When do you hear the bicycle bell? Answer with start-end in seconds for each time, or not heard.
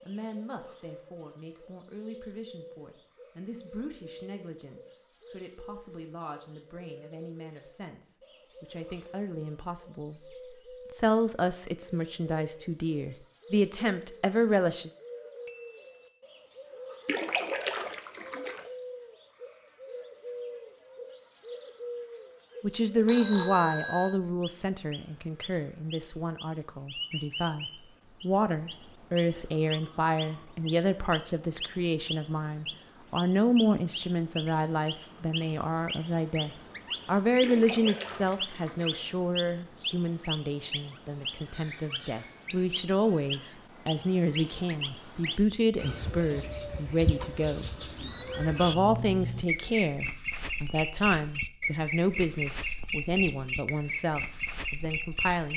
15.4-16.1, 23.1-24.2, 50.4-50.9.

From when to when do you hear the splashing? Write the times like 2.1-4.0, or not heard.
17.1-18.7, 37.4-39.0.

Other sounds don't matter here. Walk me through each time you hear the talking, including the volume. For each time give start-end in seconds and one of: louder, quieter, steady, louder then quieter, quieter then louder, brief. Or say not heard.
0.0-14.9 louder
22.6-55.5 steady.